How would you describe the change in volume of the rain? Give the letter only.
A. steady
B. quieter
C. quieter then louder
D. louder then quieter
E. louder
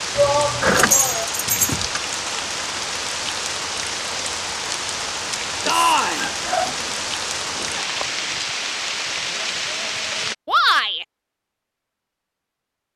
A.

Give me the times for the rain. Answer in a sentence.
You can hear the rain from 0.0 to 10.3 s.